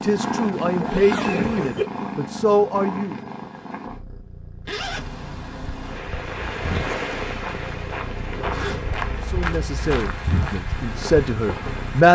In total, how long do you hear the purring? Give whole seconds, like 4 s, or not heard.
12 s.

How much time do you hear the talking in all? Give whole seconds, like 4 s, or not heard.
6 s.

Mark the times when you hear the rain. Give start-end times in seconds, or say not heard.
4.9-12.0.